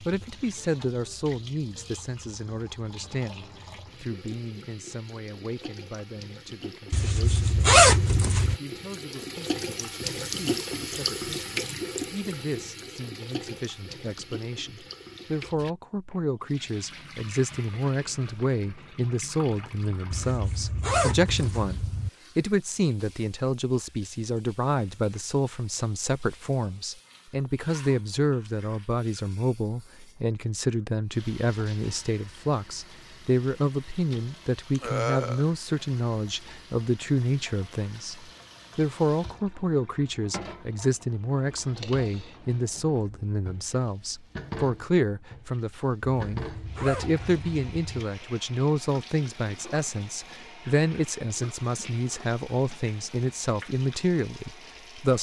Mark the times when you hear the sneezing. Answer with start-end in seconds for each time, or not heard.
34.8-35.5.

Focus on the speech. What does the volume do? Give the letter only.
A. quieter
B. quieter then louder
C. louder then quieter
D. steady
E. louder
E.